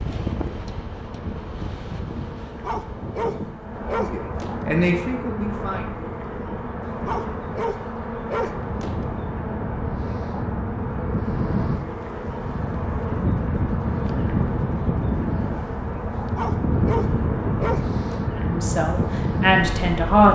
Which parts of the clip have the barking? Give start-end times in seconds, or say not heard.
2.6-4.7, 7.0-9.1, 16.1-17.9.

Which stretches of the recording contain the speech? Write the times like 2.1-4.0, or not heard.
3.9-5.9, 18.4-20.2.